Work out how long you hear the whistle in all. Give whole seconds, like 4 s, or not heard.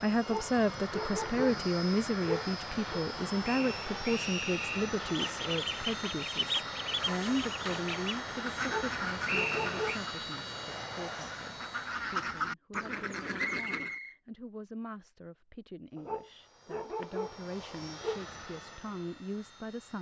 3 s.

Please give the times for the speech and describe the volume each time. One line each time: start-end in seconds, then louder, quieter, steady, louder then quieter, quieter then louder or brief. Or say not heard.
0.0-19.9 quieter.